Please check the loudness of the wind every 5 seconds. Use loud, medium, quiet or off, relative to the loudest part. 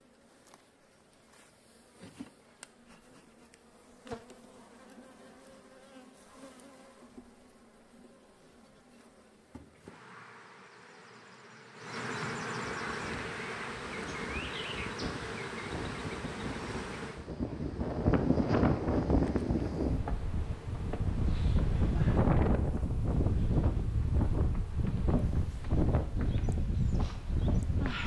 off, off, quiet, loud, loud, loud.